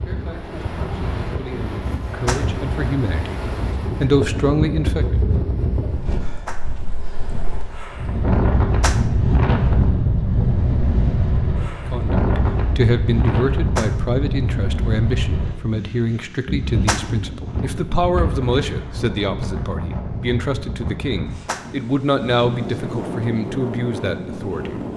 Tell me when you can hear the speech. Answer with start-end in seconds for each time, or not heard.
0.0-3.4, 4.0-5.2, 11.8-24.8.